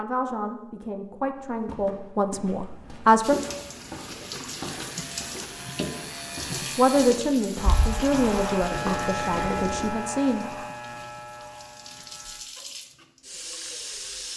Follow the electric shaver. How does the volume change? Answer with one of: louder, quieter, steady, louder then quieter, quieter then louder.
louder then quieter.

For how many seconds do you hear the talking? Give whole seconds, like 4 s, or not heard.
7 s.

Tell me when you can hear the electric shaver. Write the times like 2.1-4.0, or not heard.
4.8-12.4.